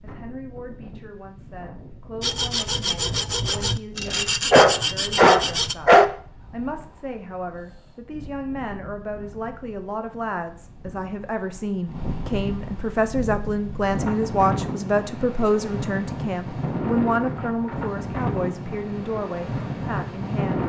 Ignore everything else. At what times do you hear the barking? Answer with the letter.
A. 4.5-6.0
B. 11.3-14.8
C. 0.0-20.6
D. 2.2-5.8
A.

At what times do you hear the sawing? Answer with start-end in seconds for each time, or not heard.
2.2-5.8.